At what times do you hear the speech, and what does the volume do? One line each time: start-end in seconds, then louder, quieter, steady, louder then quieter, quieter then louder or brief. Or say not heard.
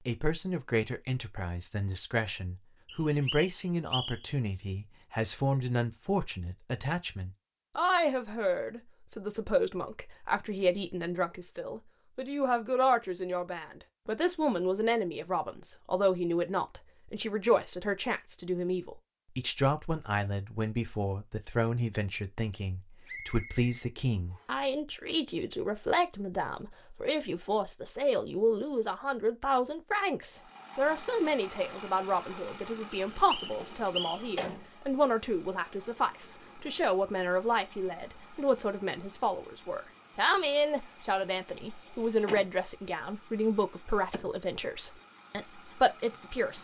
0.1-46.5 steady.